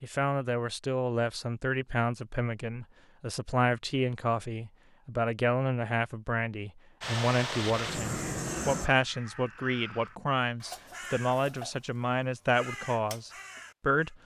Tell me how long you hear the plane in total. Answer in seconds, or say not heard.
2 s.